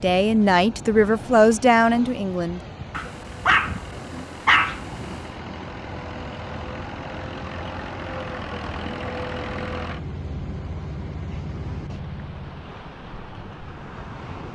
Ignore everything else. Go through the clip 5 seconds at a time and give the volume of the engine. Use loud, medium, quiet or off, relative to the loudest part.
medium, loud, loud.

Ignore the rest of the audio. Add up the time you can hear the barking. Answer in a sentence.
The barking can be heard for 2 seconds in total.